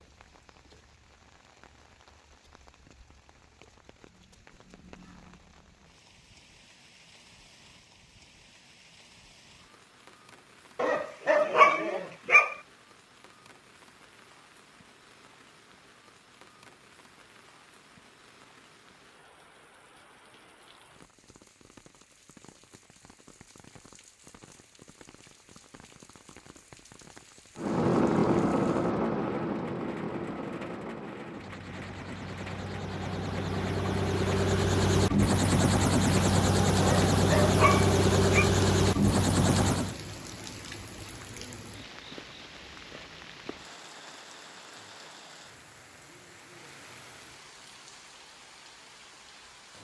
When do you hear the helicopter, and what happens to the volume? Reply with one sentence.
The helicopter can be heard from 27.6 to 40.0 s, getting quieter then louder.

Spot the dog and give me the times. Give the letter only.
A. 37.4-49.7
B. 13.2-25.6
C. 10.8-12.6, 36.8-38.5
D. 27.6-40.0
C.